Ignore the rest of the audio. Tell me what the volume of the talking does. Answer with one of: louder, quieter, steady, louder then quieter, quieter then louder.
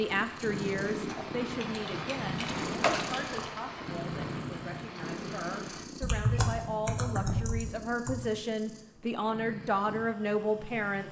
quieter then louder.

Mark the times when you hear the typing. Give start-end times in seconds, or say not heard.
1.6-3.5, 6.0-8.3.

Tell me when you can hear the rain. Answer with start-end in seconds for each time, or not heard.
0.0-5.8.